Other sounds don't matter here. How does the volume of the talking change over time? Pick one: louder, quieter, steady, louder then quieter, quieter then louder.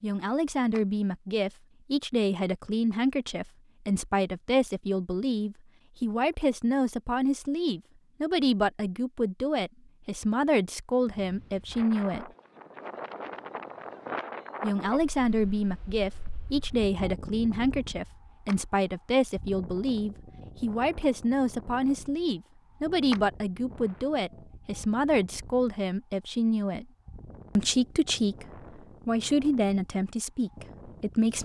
steady.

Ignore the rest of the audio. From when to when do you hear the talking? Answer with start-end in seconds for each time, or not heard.
0.0-12.3, 14.6-26.9, 27.6-31.4.